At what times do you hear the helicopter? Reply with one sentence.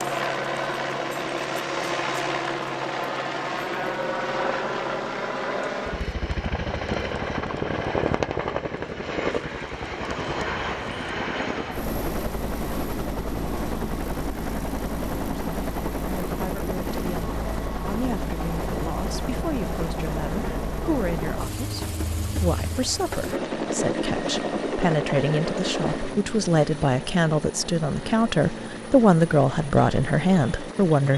You can hear the helicopter from 0.0 to 31.1 s.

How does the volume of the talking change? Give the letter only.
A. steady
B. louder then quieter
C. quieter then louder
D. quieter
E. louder
E.